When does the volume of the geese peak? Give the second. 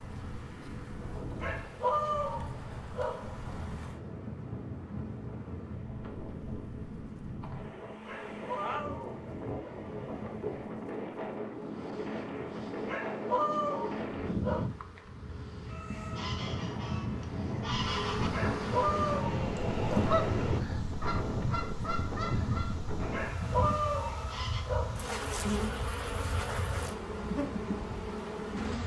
20 s.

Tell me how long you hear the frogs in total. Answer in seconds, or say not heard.
not heard.